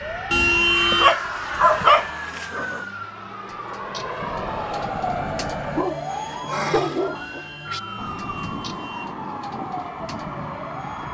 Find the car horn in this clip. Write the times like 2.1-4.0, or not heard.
0.3-1.1, 7.2-9.2.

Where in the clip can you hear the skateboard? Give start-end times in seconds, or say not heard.
not heard.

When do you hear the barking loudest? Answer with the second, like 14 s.
2 s.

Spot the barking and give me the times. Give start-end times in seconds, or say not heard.
0.9-2.8, 5.7-7.5.